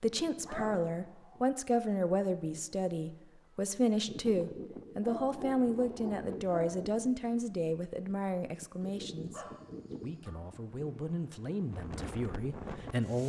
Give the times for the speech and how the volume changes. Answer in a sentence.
The speech can be heard from 0.0 to 13.2 s, getting quieter.